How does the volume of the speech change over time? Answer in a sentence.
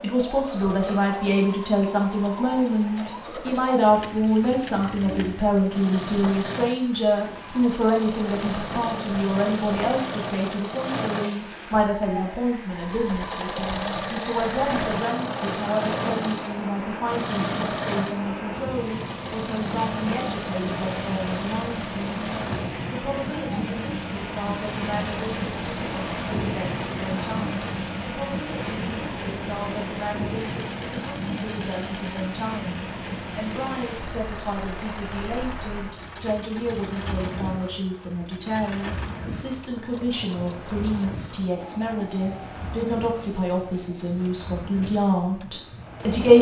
The loudness of the speech goes down, then up.